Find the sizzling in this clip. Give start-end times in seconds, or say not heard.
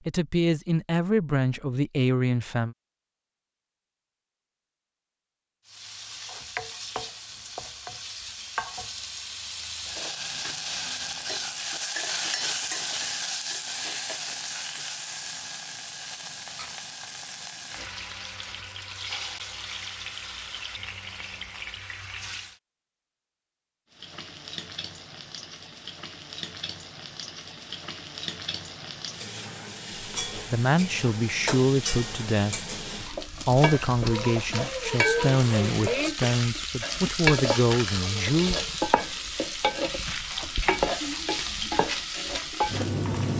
5.7-22.6, 23.9-43.3.